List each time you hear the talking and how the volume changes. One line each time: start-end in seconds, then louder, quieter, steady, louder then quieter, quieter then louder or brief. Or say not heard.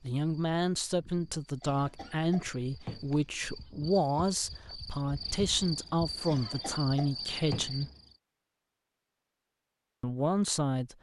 0.0-7.9 steady
10.0-10.9 brief.